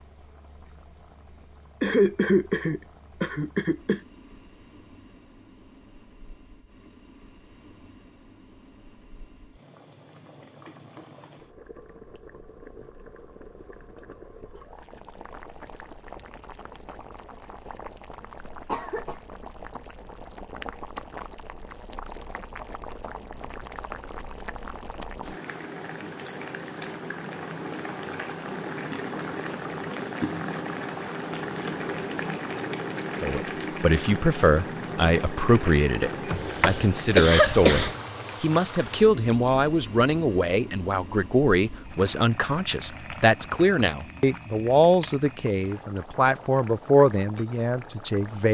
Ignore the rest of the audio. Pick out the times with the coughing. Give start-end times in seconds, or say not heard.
1.8-4.0, 18.6-19.1, 36.0-38.0.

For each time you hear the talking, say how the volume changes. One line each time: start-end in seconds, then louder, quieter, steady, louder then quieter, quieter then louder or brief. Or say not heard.
33.2-48.4 steady.